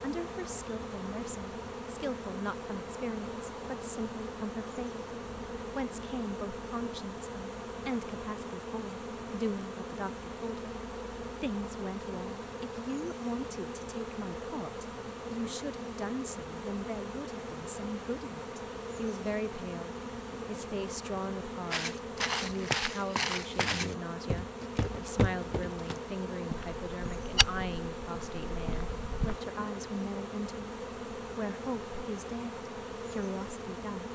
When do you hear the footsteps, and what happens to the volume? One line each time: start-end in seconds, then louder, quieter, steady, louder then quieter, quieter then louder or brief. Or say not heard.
21.7-29.4 quieter.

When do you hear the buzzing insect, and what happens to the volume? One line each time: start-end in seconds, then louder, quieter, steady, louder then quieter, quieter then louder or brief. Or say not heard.
0.0-34.0 steady.